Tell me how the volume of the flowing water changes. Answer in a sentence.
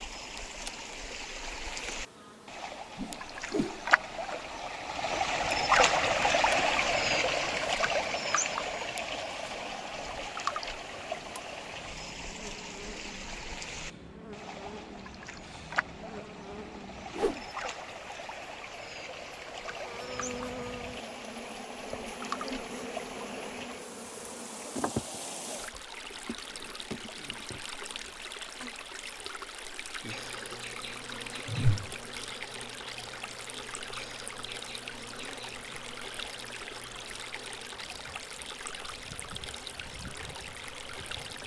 The loudness of the flowing water goes down.